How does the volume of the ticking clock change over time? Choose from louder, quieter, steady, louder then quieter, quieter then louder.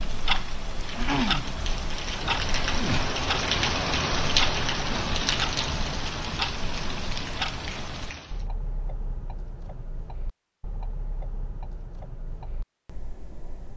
quieter.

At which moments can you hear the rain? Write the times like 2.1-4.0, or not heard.
0.0-8.4.